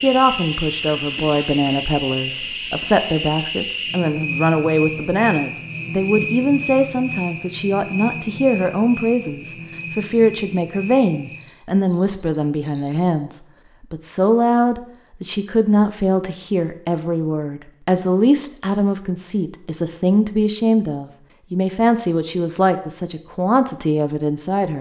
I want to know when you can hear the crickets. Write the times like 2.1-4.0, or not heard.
0.0-13.1.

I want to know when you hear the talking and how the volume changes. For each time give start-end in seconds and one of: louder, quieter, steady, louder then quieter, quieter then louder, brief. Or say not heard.
0.0-24.7 steady.